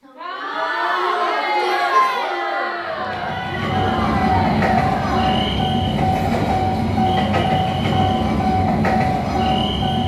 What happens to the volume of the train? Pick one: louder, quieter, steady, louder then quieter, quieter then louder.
steady.